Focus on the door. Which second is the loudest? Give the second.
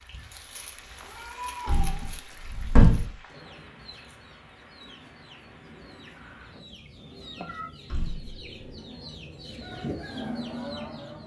3 s.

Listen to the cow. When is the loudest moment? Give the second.
10 s.